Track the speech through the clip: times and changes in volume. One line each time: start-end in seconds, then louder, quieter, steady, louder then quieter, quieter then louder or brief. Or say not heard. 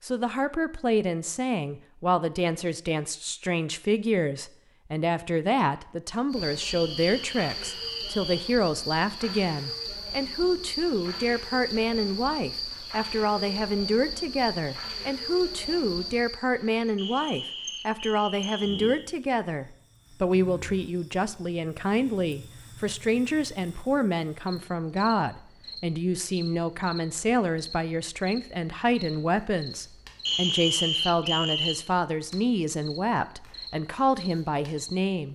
0.0-35.3 steady.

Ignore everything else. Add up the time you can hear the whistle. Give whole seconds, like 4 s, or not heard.
5 s.